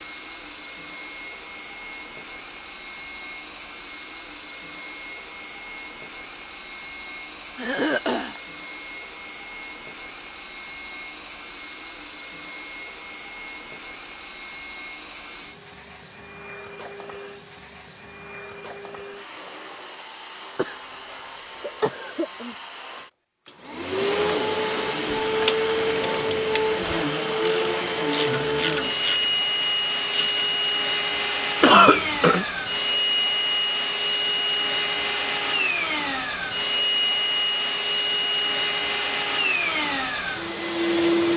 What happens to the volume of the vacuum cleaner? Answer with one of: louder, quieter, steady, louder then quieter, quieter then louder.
louder.